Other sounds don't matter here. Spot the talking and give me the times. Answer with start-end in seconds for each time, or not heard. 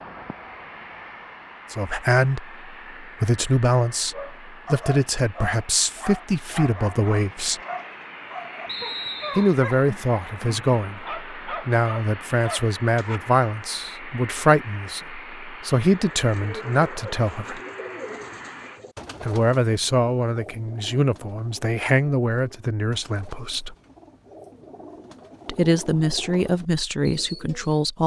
1.7-7.6, 9.3-17.6, 19.2-23.8, 25.4-28.0.